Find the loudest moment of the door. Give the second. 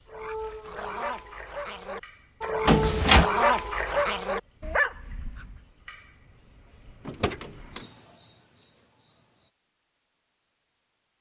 3 s.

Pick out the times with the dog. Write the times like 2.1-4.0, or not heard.
0.1-5.7.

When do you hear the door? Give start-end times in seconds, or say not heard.
2.6-3.3, 7.0-7.8.